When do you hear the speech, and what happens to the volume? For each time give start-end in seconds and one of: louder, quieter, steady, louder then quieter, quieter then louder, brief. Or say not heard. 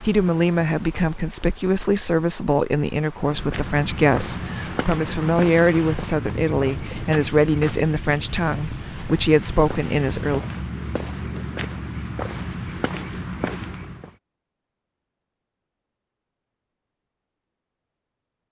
0.0-10.4 steady.